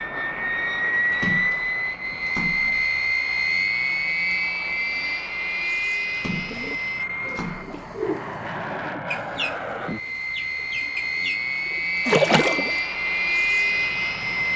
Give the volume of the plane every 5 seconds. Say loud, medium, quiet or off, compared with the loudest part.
loud, medium, loud.